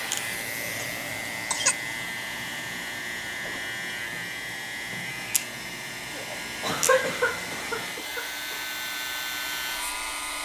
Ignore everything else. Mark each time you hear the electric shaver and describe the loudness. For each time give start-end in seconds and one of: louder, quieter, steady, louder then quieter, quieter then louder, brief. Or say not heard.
0.0-10.4 steady.